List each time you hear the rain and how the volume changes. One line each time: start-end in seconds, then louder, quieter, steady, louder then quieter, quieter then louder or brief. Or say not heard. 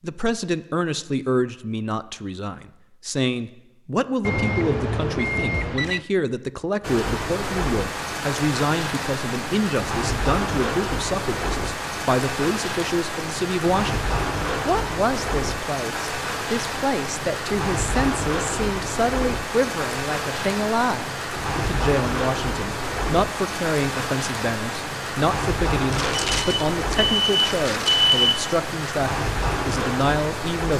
6.8-30.7 steady.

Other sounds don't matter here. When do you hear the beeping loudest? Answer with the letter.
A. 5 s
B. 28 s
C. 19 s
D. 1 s
B.